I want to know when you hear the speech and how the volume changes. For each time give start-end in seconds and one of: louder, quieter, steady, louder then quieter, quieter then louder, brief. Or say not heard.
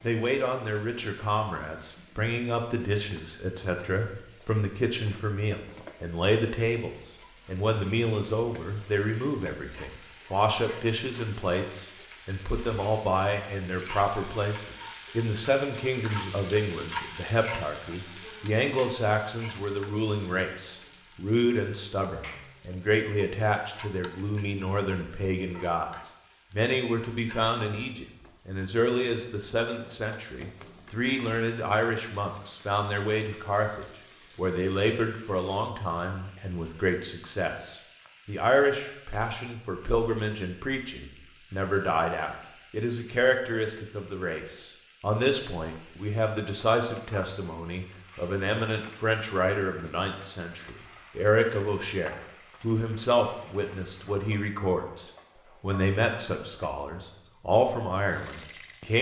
0.0-58.9 steady.